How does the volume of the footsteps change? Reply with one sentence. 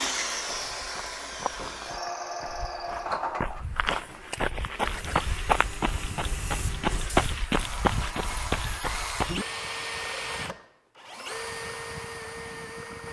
The volume of the footsteps goes up.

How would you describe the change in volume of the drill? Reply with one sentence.
The loudness of the drill goes down, then up.